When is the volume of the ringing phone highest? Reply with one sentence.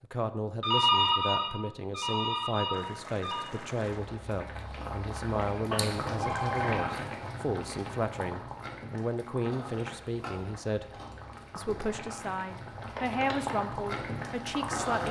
The volume of the ringing phone peaks at 1 second.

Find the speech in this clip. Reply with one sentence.
You can hear the speech from 0.0 to 15.0 s.